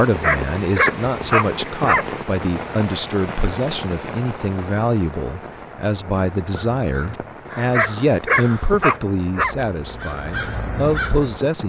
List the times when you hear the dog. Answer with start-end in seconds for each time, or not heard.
0.2-2.0, 7.7-9.6.